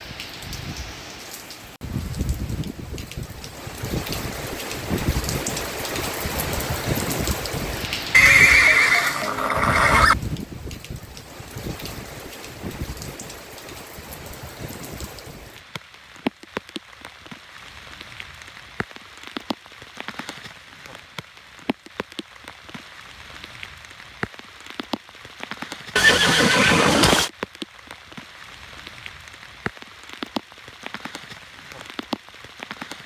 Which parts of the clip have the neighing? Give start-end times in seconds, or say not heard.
8.1-10.2, 25.9-27.3.